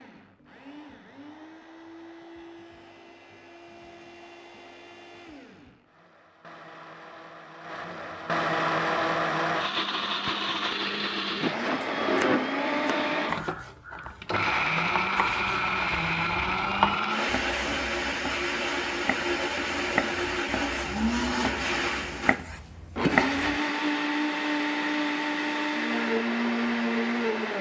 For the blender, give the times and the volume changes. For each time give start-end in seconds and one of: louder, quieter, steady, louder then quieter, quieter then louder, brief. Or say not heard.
0.0-27.5 louder.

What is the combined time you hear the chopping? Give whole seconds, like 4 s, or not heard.
12 s.